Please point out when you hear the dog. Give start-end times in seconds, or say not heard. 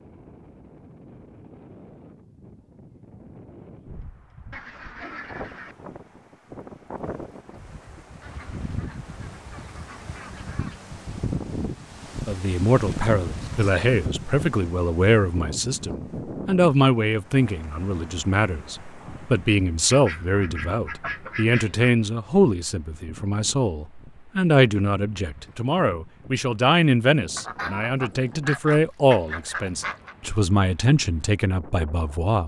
not heard.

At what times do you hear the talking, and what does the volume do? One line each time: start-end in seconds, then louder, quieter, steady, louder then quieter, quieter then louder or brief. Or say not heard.
12.2-32.4 steady.